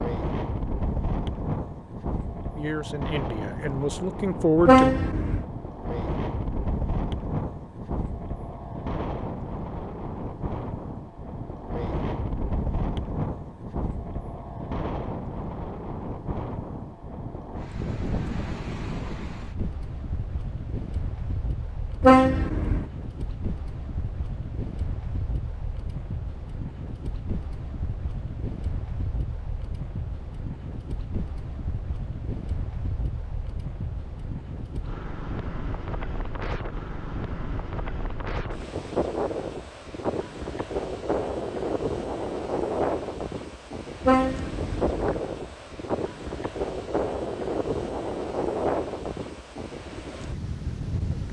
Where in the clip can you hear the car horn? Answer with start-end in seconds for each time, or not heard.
4.7-5.5, 22.0-22.9, 44.0-45.2.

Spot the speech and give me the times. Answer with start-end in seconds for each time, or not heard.
2.5-5.0.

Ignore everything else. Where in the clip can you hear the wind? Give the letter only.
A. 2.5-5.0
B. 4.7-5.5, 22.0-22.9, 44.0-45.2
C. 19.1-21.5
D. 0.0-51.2
D.